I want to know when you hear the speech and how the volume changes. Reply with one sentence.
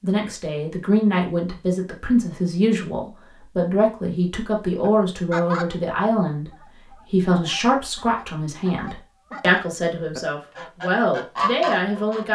You can hear the speech from 0.0 to 12.2 s, at a steady volume.